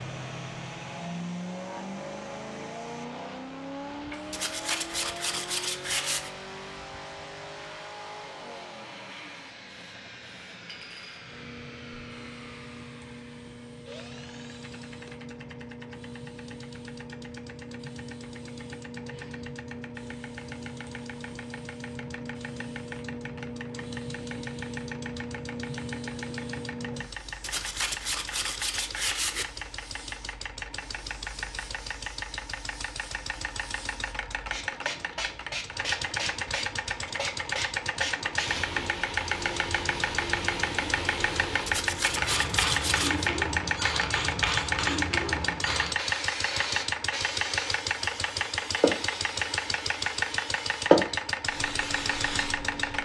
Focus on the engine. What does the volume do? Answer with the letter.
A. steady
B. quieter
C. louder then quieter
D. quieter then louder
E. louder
D.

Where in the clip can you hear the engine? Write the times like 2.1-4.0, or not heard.
0.0-53.0.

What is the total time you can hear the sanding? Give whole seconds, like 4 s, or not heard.
6 s.